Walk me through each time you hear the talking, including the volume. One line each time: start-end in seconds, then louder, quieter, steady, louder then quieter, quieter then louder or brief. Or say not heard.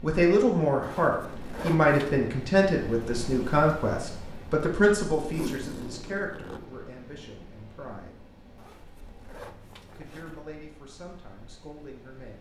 0.0-8.2 quieter
9.9-12.3 brief.